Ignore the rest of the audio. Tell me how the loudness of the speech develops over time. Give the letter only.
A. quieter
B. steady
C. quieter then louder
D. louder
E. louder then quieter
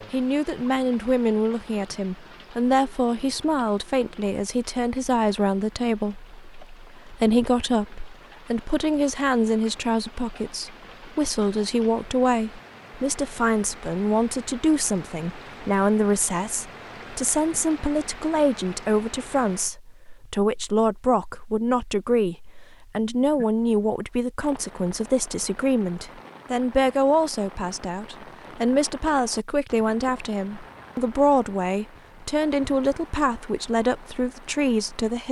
B.